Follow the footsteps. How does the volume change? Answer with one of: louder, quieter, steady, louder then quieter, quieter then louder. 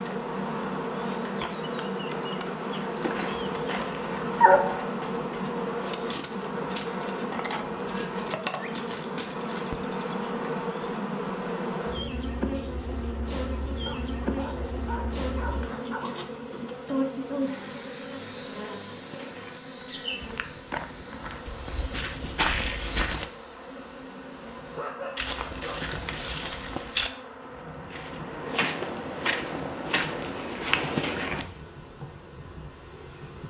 louder.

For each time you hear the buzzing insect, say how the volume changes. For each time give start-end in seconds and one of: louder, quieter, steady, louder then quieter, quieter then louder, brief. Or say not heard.
0.0-33.4 quieter.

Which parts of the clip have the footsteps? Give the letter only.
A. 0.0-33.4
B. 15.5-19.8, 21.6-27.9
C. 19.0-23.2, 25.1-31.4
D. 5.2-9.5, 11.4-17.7
C.